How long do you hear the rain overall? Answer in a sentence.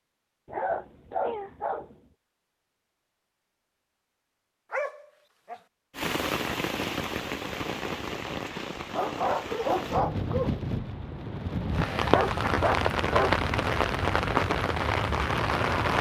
You can hear the rain for 10 seconds altogether.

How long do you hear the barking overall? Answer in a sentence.
The barking can be heard for 5 seconds in total.